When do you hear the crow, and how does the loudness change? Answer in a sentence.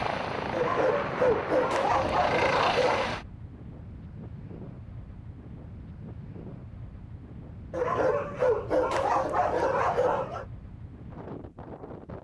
You can't hear the crow here.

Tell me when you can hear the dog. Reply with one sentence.
You can hear the dog from 0.5 to 3.2 s and from 7.7 to 10.4 s.